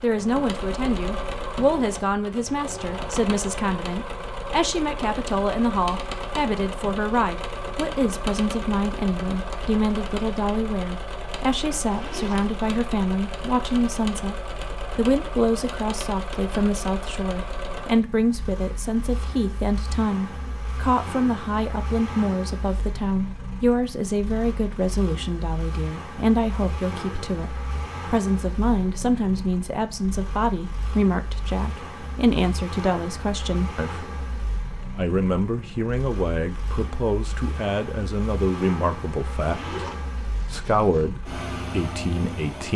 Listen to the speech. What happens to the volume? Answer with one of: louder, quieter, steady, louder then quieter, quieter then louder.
steady.